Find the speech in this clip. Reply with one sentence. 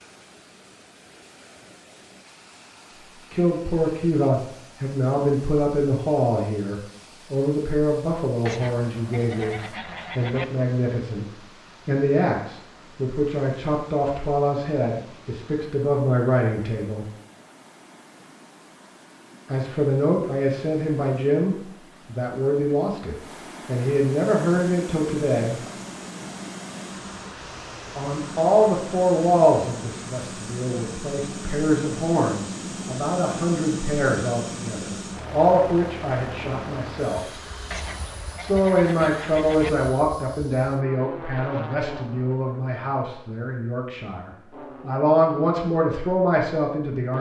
The speech can be heard from 3.3 to 17.1 s, from 19.4 to 25.6 s, from 27.9 to 37.5 s and from 38.4 to 47.1 s.